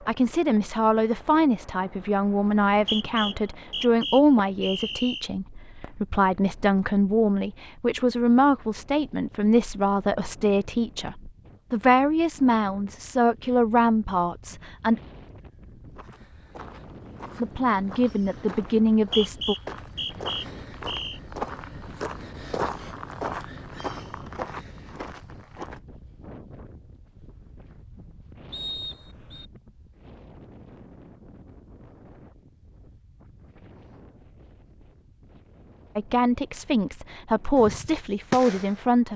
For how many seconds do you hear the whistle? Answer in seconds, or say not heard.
6 s.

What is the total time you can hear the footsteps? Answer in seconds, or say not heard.
10 s.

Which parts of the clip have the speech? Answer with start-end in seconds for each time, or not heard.
0.1-15.0, 17.4-19.6, 36.0-39.1.